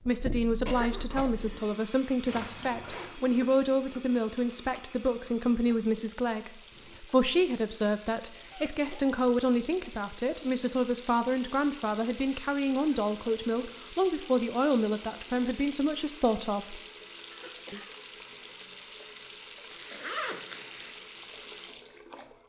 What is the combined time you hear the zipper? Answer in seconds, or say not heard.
2 s.